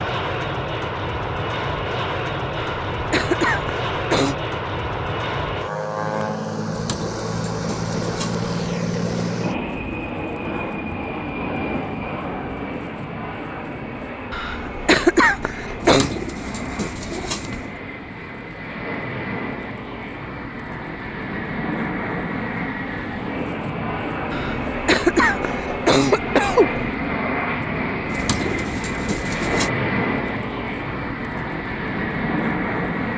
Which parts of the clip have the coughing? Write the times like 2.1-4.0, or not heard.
2.5-4.3, 14.3-16.1, 24.3-26.9.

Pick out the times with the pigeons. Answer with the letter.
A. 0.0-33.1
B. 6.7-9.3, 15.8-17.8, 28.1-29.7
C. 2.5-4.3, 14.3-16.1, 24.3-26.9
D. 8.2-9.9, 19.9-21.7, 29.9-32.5
B.